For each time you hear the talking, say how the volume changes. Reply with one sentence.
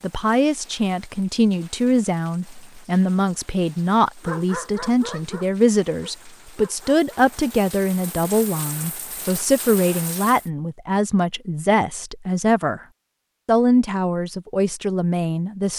You can hear the talking from 0.0 to 12.8 s, at a steady volume; and briefly from 13.4 to 15.7 s.